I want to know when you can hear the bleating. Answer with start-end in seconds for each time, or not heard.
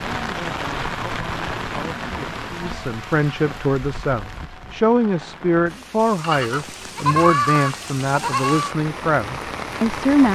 1.9-3.6, 6.2-8.8.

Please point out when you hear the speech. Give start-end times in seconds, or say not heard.
0.0-10.3.